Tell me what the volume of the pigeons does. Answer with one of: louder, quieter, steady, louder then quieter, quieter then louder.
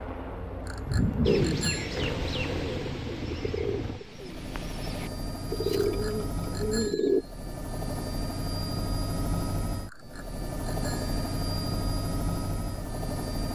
quieter then louder.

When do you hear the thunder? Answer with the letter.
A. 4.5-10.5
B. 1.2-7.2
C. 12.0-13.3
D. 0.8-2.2
D.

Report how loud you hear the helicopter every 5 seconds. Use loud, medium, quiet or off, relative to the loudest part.
medium, loud, loud.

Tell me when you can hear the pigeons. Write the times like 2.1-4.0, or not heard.
1.2-7.2.